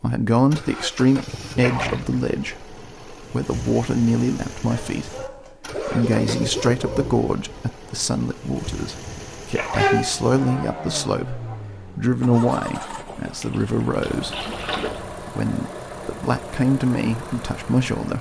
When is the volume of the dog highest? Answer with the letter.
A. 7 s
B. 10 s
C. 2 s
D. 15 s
B.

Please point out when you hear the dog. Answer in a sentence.
You can hear the dog from 4.7 to 7.2 s and from 9.8 to 11.6 s.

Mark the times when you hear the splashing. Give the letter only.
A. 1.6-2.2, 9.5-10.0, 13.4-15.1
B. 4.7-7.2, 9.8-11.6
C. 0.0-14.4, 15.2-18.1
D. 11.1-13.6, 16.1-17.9
A.